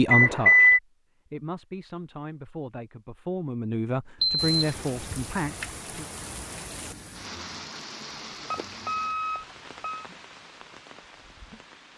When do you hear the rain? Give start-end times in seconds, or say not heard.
4.3-11.9.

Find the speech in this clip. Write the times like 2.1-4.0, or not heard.
0.0-6.0.